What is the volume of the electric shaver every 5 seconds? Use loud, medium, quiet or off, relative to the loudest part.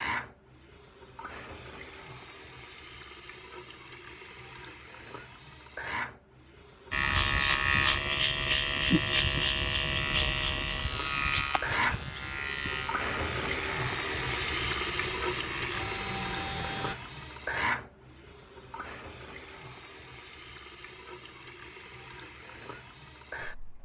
off, loud, medium, medium, off.